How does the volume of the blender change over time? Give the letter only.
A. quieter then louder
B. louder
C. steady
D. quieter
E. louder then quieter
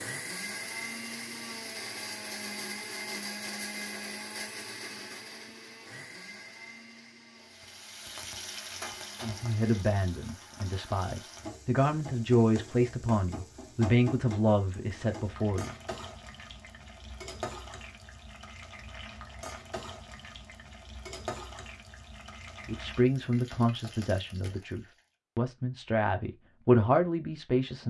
D.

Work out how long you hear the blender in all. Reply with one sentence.
You can hear the blender for 10 seconds altogether.